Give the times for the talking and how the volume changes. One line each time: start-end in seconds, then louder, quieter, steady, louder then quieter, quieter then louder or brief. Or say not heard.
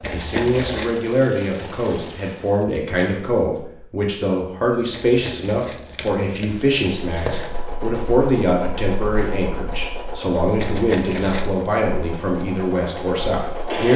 0.1-13.9 steady.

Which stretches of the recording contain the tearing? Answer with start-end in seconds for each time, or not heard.
0.0-0.9, 4.9-7.6, 10.6-11.7.